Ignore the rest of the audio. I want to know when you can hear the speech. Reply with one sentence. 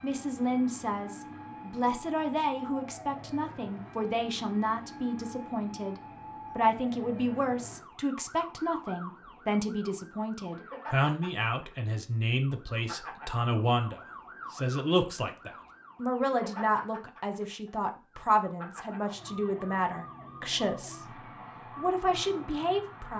The speech can be heard from 0.0 to 23.1 s.